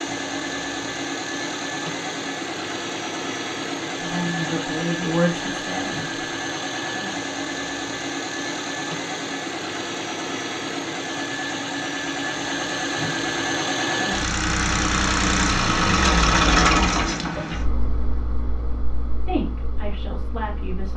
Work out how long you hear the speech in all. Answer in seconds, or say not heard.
4 s.